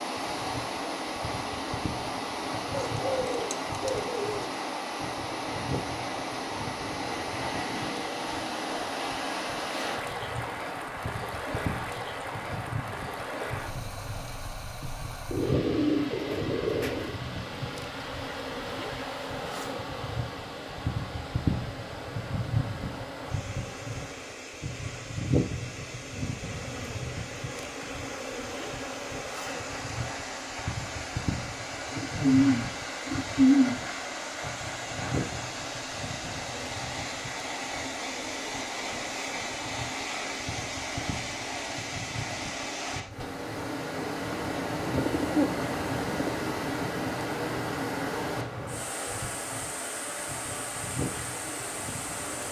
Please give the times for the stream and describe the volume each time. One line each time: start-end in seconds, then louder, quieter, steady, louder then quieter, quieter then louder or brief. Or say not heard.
0.0-52.4 quieter then louder.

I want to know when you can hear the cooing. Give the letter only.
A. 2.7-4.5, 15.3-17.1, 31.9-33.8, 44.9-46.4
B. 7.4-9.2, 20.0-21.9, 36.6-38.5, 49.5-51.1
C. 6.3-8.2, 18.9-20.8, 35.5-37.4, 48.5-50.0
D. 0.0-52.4
A.